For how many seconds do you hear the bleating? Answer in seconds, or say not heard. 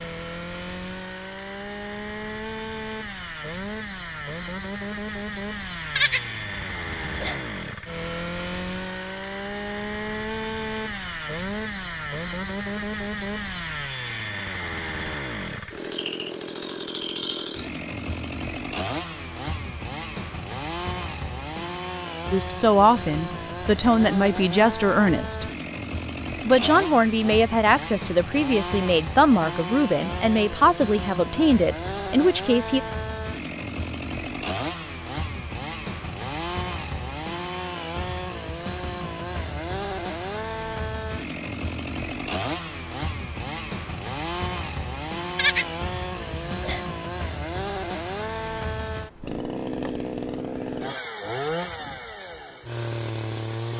3 s.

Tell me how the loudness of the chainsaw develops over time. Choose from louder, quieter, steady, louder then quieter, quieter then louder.
steady.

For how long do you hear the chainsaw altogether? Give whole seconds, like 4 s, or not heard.
54 s.